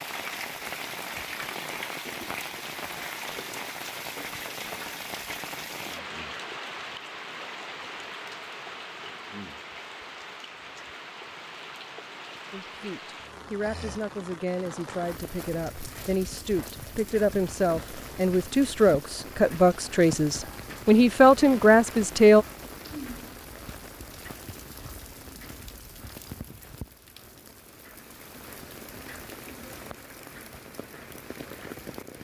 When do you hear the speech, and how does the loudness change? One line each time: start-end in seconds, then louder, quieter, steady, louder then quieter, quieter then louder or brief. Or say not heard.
12.5-22.4 louder.